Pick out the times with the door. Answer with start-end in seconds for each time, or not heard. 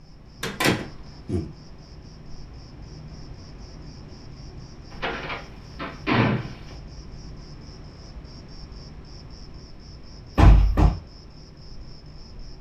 0.4-1.4, 5.0-6.5, 10.3-10.9.